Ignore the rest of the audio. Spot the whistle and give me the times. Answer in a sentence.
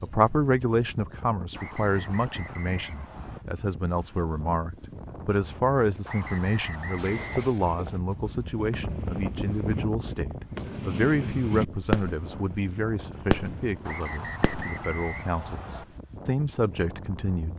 The whistle can be heard from 1.6 to 3.5 s, from 6.0 to 7.5 s and from 13.8 to 15.8 s.